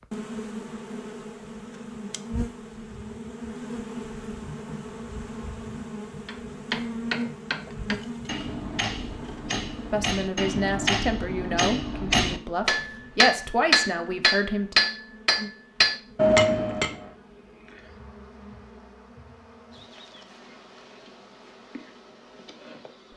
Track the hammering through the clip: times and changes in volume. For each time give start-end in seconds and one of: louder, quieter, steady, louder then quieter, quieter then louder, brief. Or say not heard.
6.2-16.9 louder.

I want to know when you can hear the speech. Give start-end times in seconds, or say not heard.
9.9-14.8.